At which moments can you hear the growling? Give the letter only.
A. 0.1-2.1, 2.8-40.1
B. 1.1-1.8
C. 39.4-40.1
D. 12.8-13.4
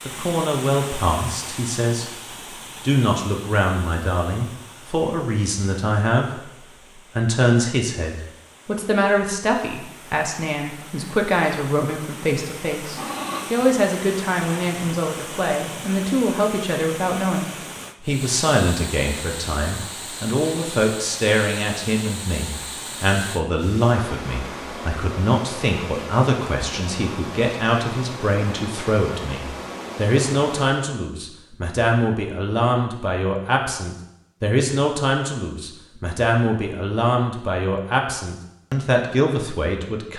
D.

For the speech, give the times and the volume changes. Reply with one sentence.
The speech can be heard briefly from 0.1 to 2.1 s; and from 2.8 to 40.1 s, at a steady volume.